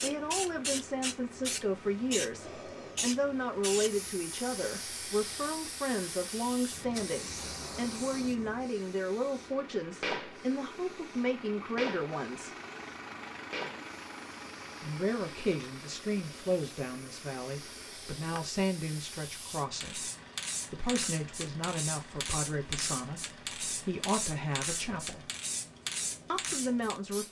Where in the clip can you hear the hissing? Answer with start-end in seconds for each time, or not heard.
0.0-27.2.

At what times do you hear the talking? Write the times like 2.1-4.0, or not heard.
0.0-12.6, 14.8-20.1, 20.7-25.3, 26.3-27.2.